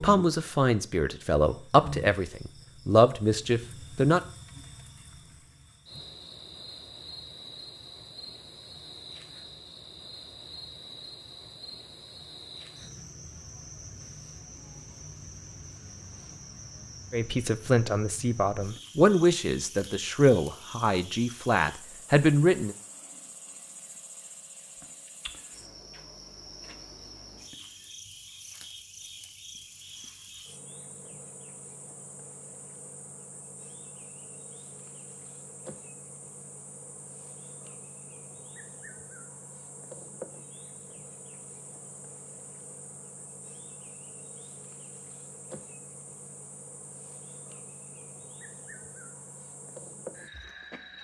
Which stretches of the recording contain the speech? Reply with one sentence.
You can hear the speech from 0.0 to 4.2 s and from 17.1 to 22.8 s.